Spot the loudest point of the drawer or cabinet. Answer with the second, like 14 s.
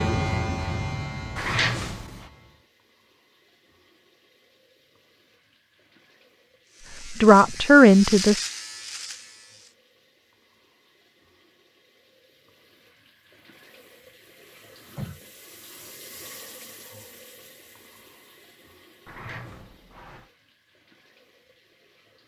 2 s.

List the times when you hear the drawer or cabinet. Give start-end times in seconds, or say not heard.
1.4-2.2, 19.1-20.3.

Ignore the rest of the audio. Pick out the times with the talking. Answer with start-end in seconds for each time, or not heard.
7.1-8.4.